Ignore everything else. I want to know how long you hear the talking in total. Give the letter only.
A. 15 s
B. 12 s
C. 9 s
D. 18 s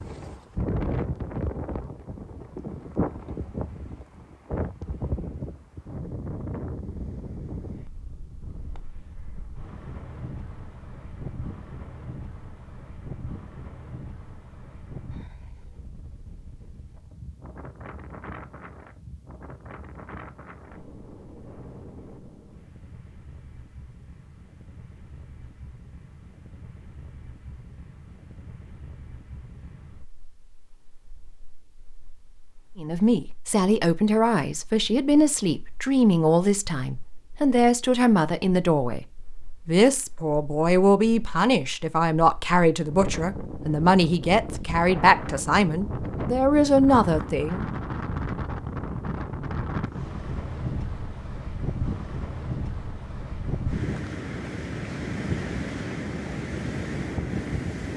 A.